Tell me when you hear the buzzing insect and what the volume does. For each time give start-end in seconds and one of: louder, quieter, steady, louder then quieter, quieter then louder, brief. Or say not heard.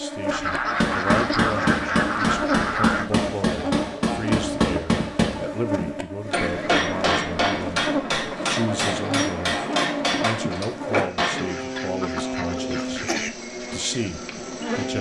0.0-14.9 steady.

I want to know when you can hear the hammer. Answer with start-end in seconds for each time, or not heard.
0.8-11.5.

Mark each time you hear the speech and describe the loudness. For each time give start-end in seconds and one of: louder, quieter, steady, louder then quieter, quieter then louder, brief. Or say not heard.
0.0-14.9 steady.